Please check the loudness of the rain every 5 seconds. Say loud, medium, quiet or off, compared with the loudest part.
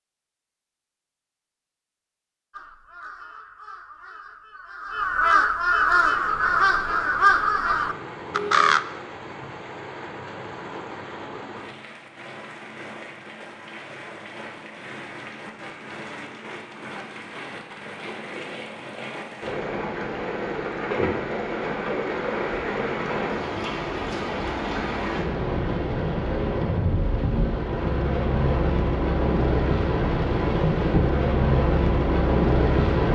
off, quiet, quiet, quiet, medium, loud, loud.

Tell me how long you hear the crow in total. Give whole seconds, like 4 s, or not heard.
6 s.